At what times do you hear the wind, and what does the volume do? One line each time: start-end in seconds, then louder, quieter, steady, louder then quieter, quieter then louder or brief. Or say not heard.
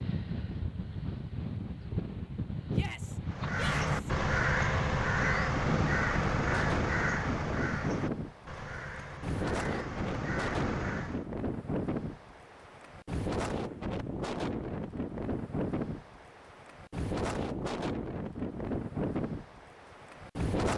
0.0-20.7 steady.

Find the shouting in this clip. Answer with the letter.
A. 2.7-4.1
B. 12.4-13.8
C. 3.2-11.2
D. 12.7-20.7
A.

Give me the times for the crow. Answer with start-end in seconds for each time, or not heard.
3.2-11.2.